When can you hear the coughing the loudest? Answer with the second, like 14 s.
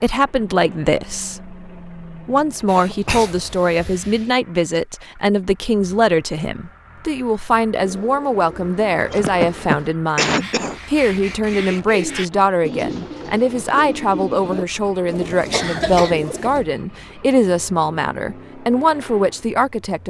10 s.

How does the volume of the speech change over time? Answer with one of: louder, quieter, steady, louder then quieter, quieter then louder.
steady.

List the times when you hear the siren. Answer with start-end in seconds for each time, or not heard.
not heard.